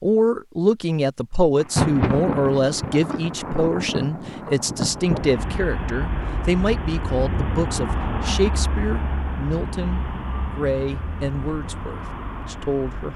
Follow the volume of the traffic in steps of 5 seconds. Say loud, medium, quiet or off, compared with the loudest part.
off, loud, medium.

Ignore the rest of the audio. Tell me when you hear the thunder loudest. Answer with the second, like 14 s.
2 s.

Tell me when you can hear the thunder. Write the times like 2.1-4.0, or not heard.
1.6-6.0.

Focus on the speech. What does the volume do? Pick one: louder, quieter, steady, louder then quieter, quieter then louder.
quieter.